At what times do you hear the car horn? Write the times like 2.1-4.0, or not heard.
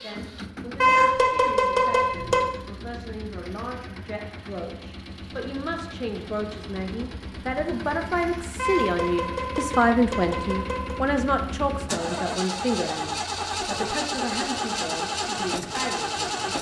0.8-2.5, 8.6-11.0.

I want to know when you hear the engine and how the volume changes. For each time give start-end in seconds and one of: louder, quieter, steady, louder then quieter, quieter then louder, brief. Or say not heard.
0.0-16.5 louder.